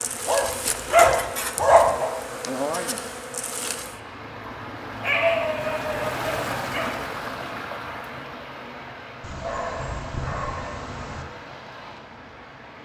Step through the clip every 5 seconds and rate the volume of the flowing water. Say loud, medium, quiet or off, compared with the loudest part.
medium, loud, medium.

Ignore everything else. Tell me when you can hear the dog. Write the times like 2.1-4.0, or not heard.
0.2-2.1, 5.0-7.0, 9.2-11.2.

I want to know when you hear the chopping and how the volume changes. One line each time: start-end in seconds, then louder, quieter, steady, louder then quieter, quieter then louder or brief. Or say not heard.
not heard.